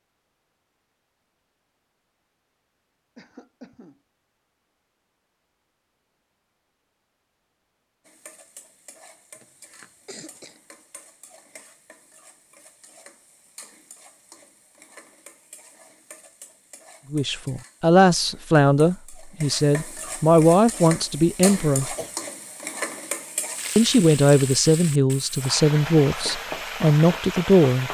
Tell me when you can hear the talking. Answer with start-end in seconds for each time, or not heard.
17.1-21.9, 23.8-27.8.